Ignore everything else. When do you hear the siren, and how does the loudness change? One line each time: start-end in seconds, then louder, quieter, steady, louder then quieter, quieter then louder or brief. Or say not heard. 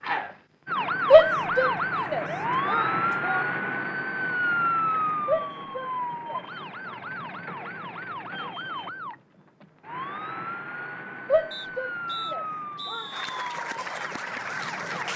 0.0-15.1 quieter.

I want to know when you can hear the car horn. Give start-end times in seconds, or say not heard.
not heard.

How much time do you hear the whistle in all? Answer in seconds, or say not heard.
2 s.